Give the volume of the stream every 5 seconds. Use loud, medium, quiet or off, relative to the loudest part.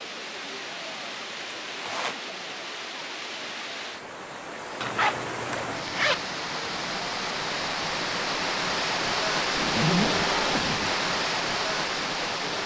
medium, loud, loud.